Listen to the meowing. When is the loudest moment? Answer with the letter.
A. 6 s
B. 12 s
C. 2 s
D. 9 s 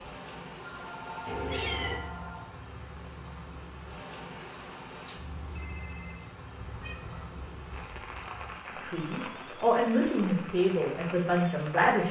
C.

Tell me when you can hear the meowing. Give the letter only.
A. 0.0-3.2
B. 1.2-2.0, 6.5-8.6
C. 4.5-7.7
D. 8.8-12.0
B.